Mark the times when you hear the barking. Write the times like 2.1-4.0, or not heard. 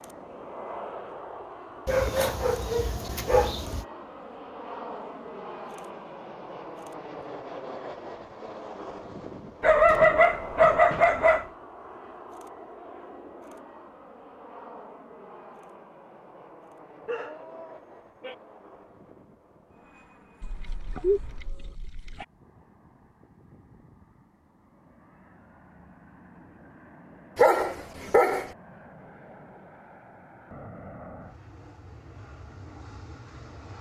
1.9-3.9, 9.6-11.4, 17.1-18.4, 20.4-22.2, 27.4-28.5.